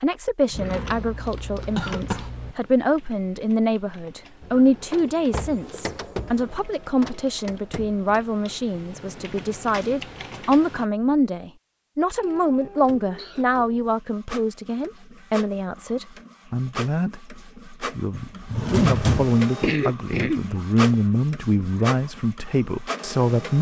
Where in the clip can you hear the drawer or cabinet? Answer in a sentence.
The drawer or cabinet can be heard from 0.5 to 2.2 s, from 9.7 to 10.4 s and from 18.1 to 19.4 s.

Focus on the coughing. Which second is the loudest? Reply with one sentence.
The volume of the coughing peaks at 20 seconds.